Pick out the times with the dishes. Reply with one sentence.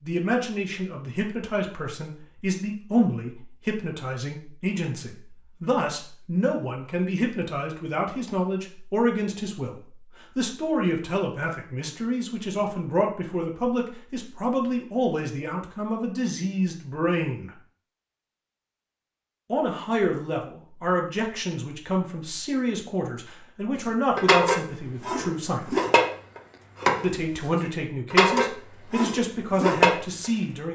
The dishes can be heard from 24.1 to 27.2 s and from 28.1 to 30.3 s.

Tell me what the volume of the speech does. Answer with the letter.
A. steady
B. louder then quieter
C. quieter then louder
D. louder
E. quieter
A.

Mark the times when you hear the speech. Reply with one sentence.
The speech can be heard from 0.0 to 17.5 s, from 19.5 to 25.7 s and from 27.0 to 30.6 s.